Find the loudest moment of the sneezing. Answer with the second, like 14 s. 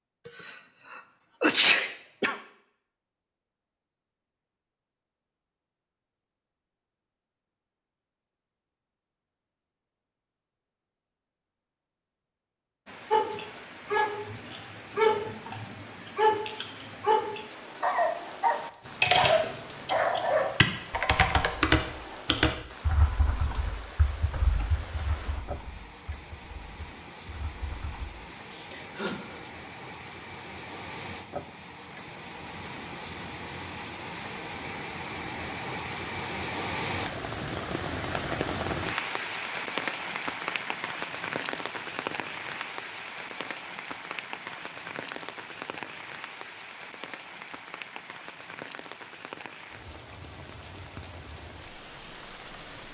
2 s.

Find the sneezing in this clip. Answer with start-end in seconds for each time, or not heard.
0.2-2.4, 28.3-29.6.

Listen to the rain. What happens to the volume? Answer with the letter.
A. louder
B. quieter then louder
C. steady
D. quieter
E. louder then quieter
E.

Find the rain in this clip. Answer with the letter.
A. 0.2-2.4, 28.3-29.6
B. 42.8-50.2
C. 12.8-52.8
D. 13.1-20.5
C.